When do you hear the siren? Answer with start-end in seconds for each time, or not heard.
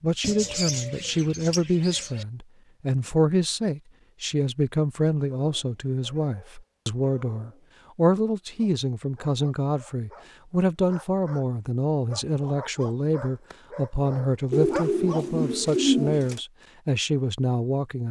not heard.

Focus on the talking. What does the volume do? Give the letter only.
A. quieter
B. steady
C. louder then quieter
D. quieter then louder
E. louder
B.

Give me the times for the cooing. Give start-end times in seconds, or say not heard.
0.2-2.2, 14.5-16.4.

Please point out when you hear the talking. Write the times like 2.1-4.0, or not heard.
0.0-18.0.